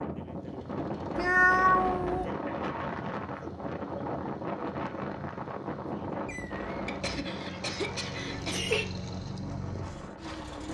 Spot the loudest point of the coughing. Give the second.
8 s.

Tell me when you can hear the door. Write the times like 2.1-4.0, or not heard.
not heard.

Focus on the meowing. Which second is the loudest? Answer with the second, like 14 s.
2 s.